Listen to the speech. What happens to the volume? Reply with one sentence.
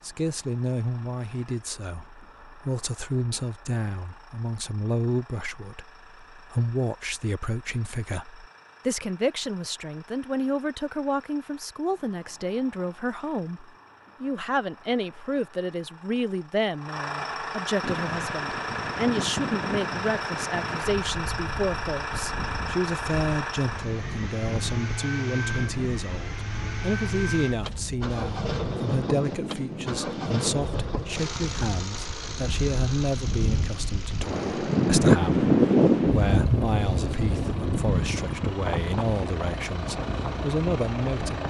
The loudness of the speech stays about the same.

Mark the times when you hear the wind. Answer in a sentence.
The wind can be heard from 17.8 to 41.4 s.